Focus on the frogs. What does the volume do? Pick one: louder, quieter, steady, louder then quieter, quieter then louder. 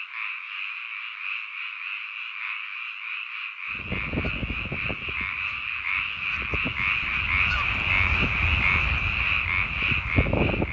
louder.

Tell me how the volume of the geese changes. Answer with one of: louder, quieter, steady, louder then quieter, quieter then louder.
quieter then louder.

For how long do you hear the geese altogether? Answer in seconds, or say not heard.
7 s.